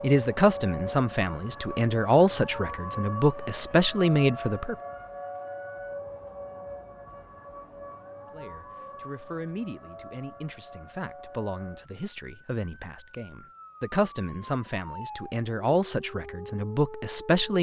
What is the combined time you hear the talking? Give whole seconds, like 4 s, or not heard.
14 s.